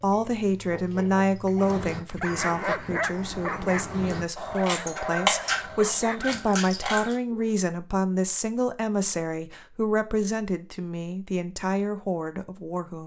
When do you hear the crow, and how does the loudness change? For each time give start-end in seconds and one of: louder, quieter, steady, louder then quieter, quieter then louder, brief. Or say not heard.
1.6-7.2 louder then quieter.